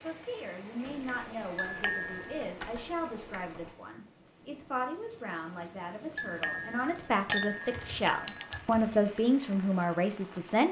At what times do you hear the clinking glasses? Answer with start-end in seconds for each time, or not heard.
1.6-2.2, 6.2-8.6.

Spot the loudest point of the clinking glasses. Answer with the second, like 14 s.
7 s.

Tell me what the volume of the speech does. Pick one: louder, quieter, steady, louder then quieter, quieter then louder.
louder.